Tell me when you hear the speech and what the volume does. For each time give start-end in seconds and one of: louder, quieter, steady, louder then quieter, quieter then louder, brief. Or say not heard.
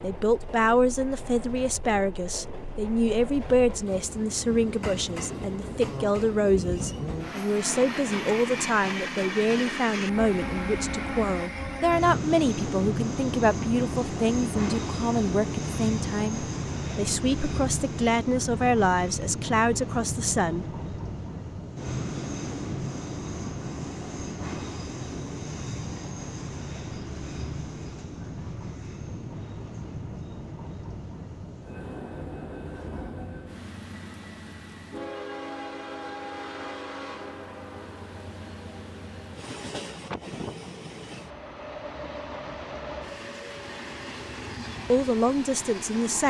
0.0-20.6 steady
44.9-46.2 brief.